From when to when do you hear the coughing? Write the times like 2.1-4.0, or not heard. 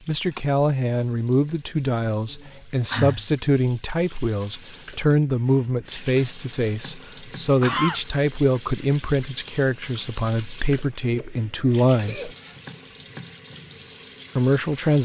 1.9-3.2, 7.6-8.0, 10.9-12.3.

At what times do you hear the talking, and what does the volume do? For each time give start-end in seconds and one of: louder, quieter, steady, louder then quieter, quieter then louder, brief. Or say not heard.
0.1-12.3 steady
14.3-15.0 brief.